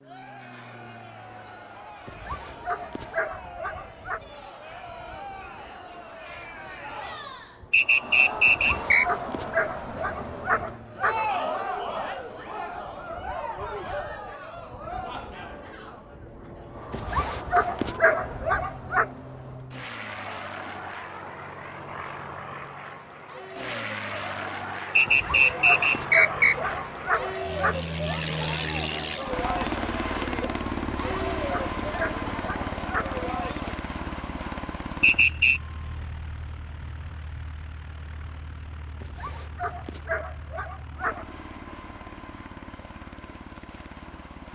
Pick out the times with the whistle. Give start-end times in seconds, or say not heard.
7.7-9.1, 24.9-26.6, 35.0-35.6.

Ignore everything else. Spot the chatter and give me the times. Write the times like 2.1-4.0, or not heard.
0.0-33.8.